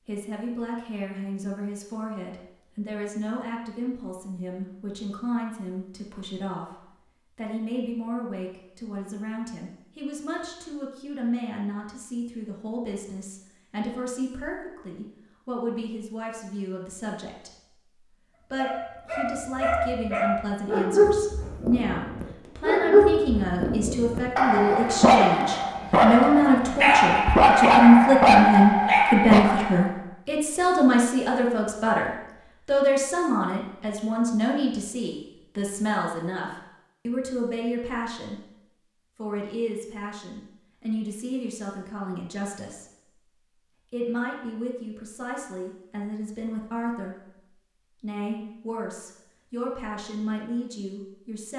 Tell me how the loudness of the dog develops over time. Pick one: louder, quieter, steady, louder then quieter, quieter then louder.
louder.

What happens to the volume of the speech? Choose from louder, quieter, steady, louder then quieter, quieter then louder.
louder then quieter.